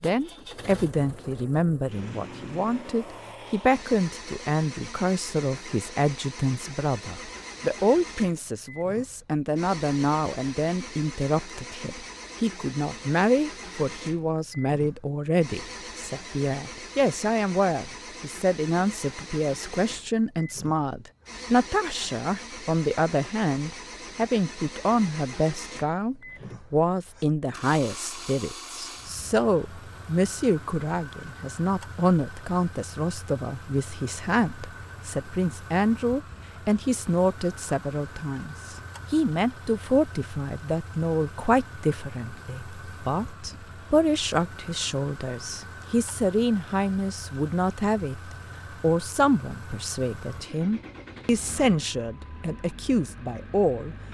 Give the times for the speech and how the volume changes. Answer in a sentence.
You can hear the speech from 0.0 to 54.0 s, at a steady volume.